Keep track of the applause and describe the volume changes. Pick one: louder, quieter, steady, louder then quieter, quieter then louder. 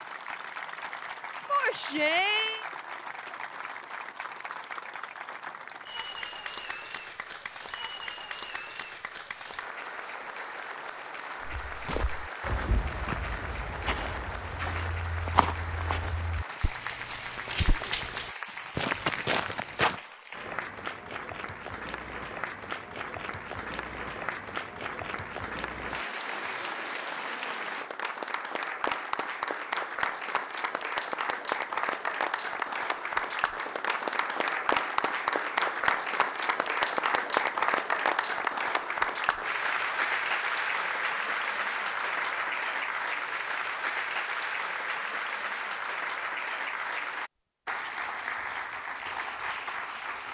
louder.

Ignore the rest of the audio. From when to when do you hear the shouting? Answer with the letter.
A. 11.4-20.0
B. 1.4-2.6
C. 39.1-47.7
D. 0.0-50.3
B.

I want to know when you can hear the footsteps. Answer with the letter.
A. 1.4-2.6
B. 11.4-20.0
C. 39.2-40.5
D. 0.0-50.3
B.